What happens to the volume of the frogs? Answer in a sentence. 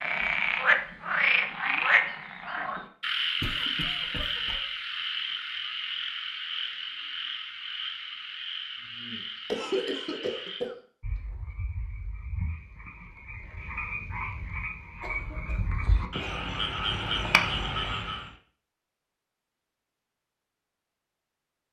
The loudness of the frogs goes down, then up.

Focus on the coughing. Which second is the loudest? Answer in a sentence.
The volume of the coughing peaks at 10 seconds.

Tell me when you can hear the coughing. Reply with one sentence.
The coughing can be heard from 3.4 to 4.6 s, from 9.4 to 10.8 s and from 15.0 to 16.4 s.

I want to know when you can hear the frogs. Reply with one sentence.
The frogs can be heard from 0.0 to 18.3 s.